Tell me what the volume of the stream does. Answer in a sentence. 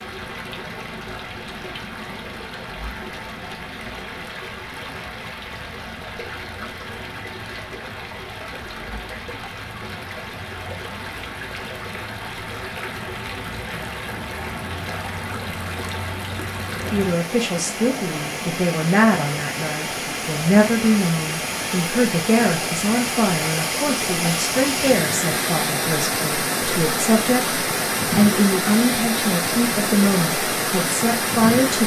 The loudness of the stream goes up.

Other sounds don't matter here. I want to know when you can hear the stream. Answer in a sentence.
The stream can be heard from 0.0 to 31.8 s.